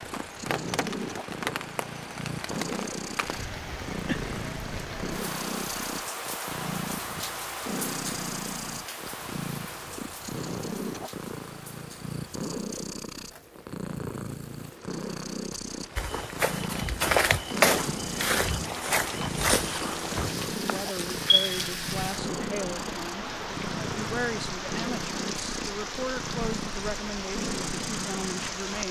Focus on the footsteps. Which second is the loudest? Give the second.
18 s.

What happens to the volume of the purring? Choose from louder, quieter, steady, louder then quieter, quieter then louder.
steady.